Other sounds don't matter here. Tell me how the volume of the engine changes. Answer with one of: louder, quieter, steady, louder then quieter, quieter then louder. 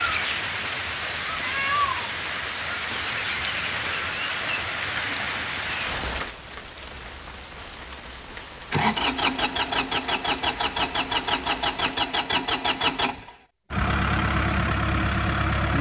steady.